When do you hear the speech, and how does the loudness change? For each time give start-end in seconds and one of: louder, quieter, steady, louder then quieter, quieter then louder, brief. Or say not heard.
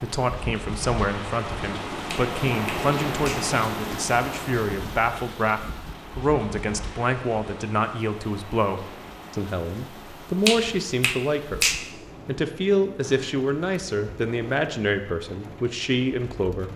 0.0-16.7 steady.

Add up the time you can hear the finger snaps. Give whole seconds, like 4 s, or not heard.
3 s.